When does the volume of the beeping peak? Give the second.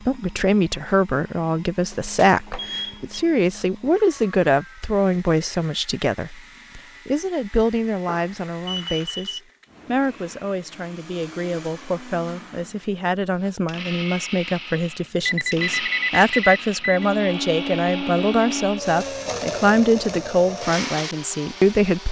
16 s.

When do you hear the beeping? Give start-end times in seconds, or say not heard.
1.9-3.2, 8.1-9.4, 15.2-17.1.